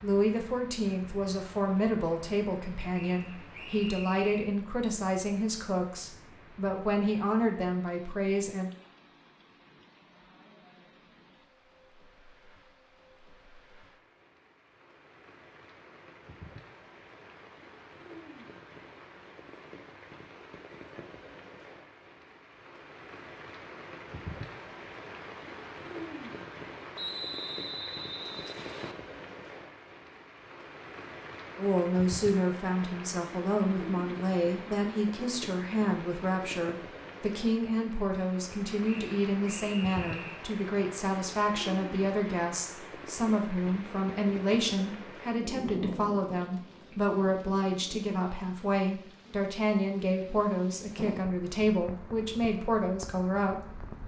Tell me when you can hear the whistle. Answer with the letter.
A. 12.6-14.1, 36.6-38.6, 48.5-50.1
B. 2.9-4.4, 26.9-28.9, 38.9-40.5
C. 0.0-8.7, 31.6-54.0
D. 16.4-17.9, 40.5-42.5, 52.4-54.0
B.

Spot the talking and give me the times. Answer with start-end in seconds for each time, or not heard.
0.0-8.7, 31.6-54.0.